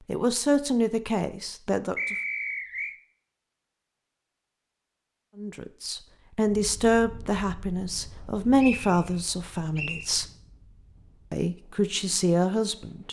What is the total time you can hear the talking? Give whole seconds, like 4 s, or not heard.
9 s.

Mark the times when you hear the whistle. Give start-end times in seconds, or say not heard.
1.9-3.0, 8.6-10.1.